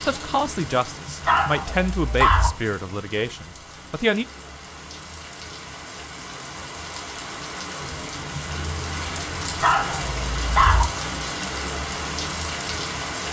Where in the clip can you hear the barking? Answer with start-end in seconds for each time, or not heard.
1.2-2.5, 9.6-10.8.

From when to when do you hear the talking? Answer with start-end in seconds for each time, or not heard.
0.0-4.2.